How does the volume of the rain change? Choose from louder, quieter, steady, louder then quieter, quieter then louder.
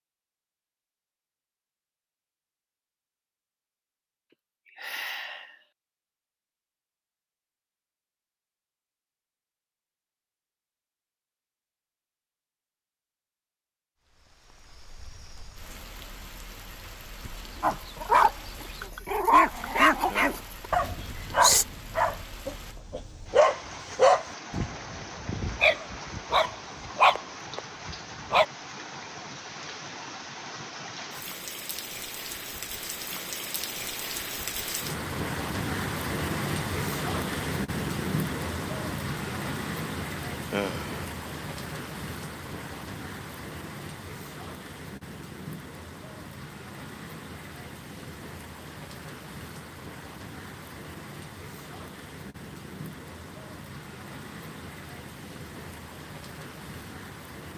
louder then quieter.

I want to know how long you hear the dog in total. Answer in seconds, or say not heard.
11 s.